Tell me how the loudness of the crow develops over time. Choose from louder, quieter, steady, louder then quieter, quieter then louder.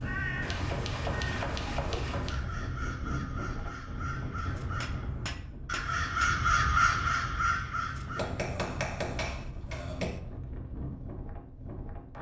louder.